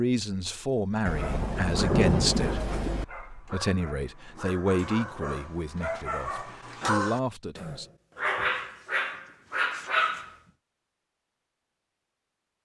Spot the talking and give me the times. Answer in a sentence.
The talking can be heard from 0.0 to 7.8 s.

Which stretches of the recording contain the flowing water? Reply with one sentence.
You can't hear the flowing water here.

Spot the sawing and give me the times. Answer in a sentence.
You can't hear the sawing here.